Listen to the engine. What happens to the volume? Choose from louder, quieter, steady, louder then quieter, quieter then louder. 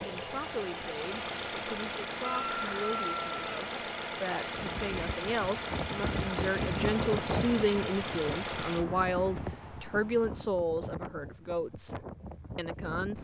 steady.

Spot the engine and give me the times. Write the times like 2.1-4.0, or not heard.
0.0-8.8.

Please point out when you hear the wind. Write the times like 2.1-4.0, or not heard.
4.5-13.2.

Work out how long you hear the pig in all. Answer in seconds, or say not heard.
not heard.